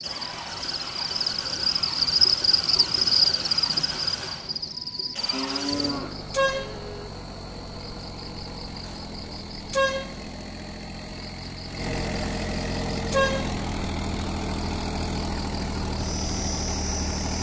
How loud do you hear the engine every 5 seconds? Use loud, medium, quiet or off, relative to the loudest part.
medium, medium, loud, loud.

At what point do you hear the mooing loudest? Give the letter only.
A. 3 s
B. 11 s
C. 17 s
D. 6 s
D.